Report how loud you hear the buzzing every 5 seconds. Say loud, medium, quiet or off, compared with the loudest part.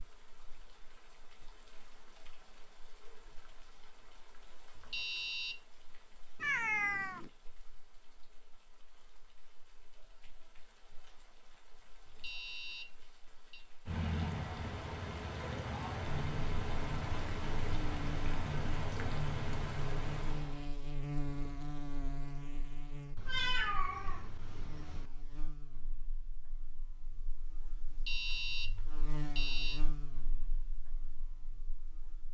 off, off, off, loud, loud, medium, quiet.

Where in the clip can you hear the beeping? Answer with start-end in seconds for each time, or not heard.
4.8-5.5, 12.1-13.6, 27.9-29.8.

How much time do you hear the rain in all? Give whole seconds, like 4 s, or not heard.
21 s.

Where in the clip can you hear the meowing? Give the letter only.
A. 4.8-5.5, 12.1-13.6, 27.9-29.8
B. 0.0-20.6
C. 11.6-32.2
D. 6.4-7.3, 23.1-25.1
D.